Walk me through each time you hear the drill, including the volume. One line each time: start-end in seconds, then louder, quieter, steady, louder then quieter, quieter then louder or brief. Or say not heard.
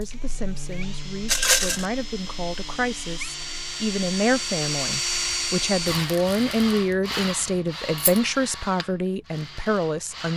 0.0-10.3 louder then quieter.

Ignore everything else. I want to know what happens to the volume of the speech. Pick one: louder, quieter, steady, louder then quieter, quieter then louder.
louder.